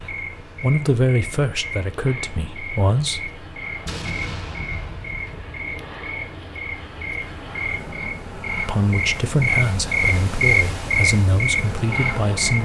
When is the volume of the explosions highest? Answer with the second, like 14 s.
4 s.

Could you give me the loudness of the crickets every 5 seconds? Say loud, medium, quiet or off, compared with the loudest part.
quiet, medium, loud.